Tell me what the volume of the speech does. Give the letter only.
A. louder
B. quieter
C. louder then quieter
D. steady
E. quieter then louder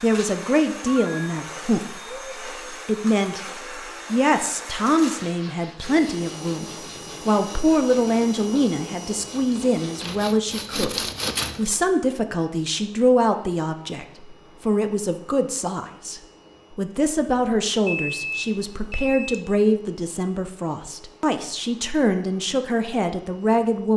D.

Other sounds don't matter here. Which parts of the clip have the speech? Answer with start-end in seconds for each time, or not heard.
0.0-23.9.